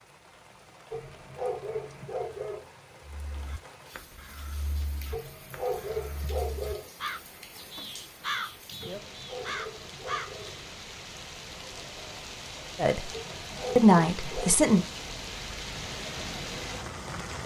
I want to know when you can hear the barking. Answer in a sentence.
The barking can be heard from 0.9 to 2.7 s, from 5.1 to 6.9 s, from 8.8 to 10.6 s and from 13.1 to 14.7 s.